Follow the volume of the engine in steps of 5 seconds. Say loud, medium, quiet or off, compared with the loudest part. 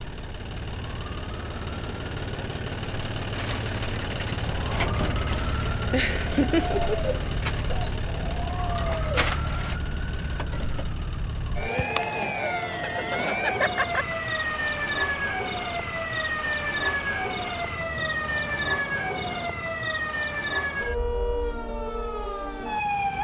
loud, loud, medium, medium, off.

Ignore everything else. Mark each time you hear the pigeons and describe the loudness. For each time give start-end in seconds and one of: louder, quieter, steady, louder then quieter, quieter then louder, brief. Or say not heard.
3.3-9.8 louder.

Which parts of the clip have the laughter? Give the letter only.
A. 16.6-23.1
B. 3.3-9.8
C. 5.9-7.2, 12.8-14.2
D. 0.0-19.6
C.